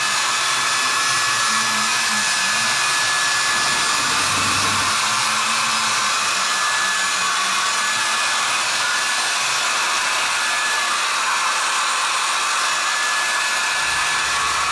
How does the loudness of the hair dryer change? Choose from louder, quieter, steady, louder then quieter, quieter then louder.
steady.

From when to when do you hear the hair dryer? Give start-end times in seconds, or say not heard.
0.0-14.6.